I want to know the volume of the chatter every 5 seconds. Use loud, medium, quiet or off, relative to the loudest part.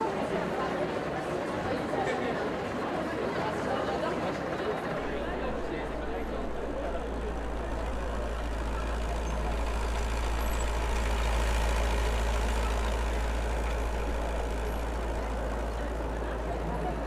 loud, medium, medium, medium.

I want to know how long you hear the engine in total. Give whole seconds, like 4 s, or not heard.
17 s.